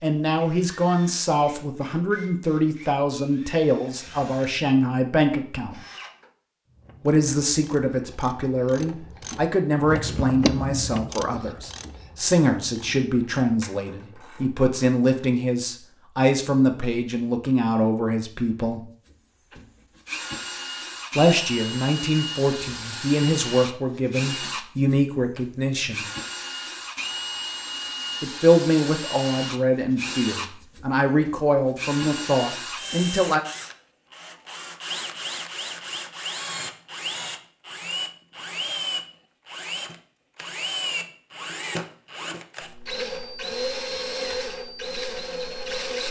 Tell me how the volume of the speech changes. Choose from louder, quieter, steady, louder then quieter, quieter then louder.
steady.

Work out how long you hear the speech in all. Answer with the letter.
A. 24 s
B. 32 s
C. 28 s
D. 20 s
C.